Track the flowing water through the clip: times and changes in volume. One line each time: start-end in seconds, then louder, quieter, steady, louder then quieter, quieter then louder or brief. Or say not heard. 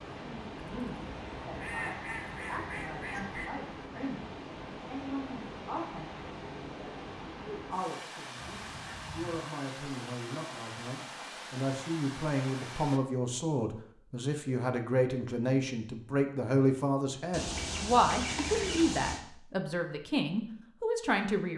0.0-13.0 steady.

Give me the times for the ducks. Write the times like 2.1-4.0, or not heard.
0.6-3.5, 8.3-9.4, 17.3-19.2.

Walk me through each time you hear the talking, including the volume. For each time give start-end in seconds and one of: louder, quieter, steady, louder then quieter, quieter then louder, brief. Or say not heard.
0.2-21.5 louder.